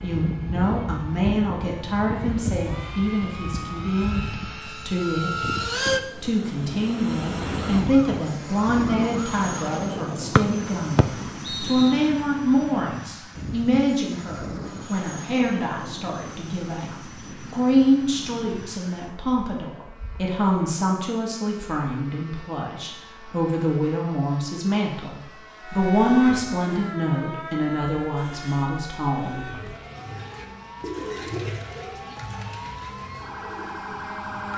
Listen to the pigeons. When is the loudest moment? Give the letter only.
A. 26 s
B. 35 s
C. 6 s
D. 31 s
D.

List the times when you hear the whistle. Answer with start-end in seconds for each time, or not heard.
10.3-12.1.